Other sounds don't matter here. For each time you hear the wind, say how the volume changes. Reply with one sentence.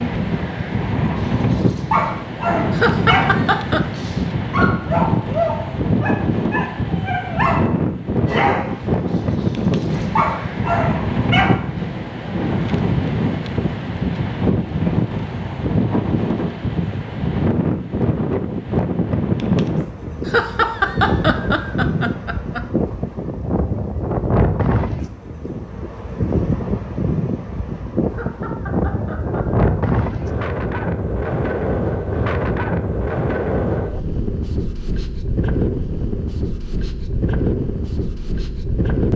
The wind can be heard from 0.0 to 39.1 s, at a steady volume.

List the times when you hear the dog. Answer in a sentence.
The dog can be heard from 1.4 to 11.6 s.